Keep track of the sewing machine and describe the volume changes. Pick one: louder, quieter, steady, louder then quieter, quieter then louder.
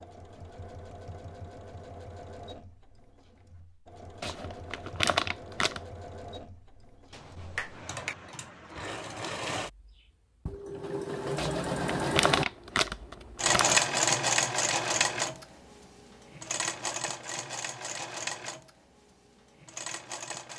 louder then quieter.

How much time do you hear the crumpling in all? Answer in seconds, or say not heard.
4 s.